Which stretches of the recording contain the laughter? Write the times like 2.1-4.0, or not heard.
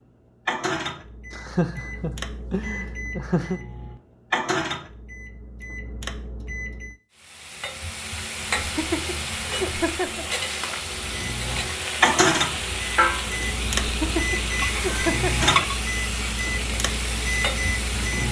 1.3-3.6, 8.6-10.2, 13.8-15.5.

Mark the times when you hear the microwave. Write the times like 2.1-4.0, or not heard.
0.5-7.0, 10.9-18.2.